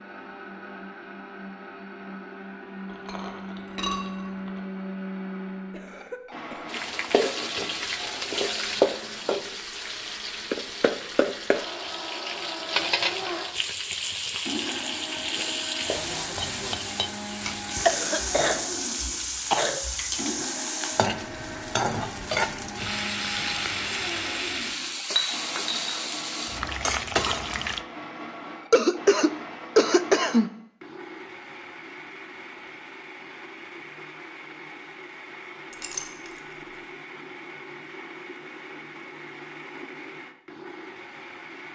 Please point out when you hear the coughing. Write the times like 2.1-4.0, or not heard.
5.7-6.8, 17.9-20.1, 28.7-30.5.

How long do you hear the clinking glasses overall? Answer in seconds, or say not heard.
3 s.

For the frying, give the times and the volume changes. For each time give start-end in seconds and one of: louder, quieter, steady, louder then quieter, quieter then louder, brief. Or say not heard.
6.7-27.8 steady.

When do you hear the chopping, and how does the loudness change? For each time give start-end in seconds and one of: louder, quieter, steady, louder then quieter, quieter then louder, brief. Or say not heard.
not heard.